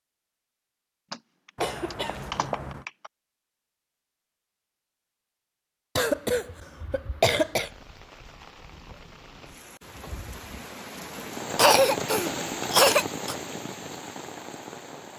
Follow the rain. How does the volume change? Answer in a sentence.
The volume of the rain goes up, then down.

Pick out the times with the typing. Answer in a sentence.
The typing can be heard from 1.1 to 3.1 s.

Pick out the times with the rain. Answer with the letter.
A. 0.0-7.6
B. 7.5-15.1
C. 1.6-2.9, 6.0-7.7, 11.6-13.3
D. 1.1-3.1
B.